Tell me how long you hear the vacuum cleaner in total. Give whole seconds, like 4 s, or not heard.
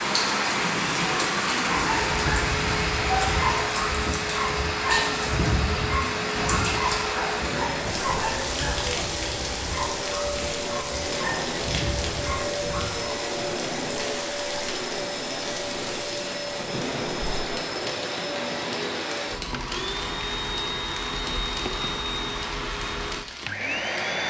24 s.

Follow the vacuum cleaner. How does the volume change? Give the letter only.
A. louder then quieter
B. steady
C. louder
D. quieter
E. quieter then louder
B.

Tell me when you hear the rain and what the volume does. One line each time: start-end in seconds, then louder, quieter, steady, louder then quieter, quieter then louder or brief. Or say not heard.
0.0-24.0 quieter.